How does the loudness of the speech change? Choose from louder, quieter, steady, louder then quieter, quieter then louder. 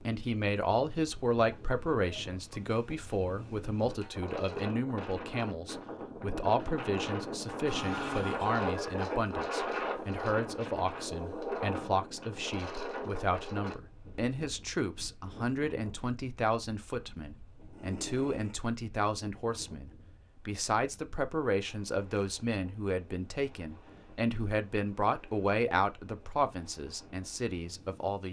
steady.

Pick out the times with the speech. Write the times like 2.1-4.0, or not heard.
0.0-28.2.